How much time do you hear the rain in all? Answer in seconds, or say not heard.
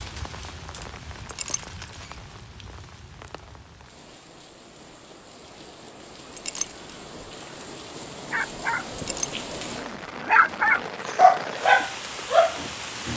13 s.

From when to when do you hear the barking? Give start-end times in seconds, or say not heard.
8.3-13.1.